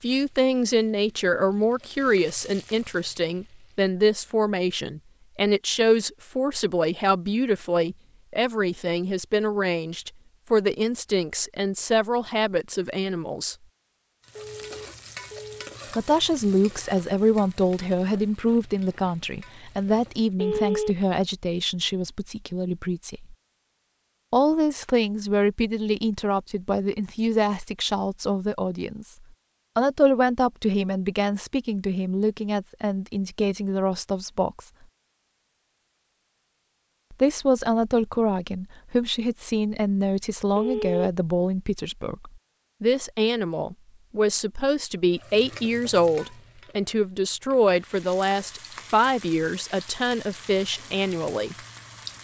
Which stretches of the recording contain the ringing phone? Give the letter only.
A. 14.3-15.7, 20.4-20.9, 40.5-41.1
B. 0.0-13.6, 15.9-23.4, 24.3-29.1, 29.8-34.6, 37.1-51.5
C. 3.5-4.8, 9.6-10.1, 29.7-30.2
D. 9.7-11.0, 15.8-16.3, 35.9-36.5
A.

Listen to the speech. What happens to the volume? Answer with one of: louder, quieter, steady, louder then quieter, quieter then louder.
steady.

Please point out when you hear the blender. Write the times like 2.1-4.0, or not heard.
not heard.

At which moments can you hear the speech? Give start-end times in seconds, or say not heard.
0.0-13.6, 15.9-23.4, 24.3-29.1, 29.8-34.6, 37.1-51.5.